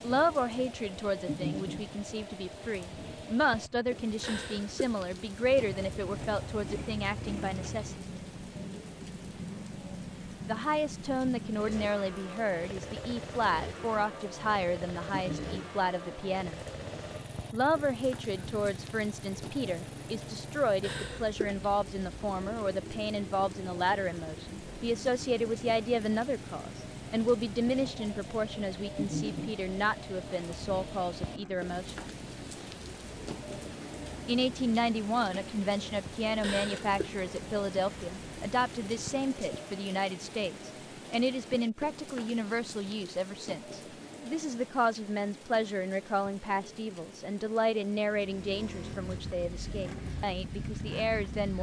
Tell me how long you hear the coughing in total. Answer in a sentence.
You can hear the coughing for 2 seconds altogether.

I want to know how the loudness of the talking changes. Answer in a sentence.
The volume of the talking stays about the same.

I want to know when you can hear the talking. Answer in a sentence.
You can hear the talking from 0.0 to 8.0 s, from 10.4 to 16.6 s, from 17.5 to 32.0 s and from 34.2 to 51.5 s.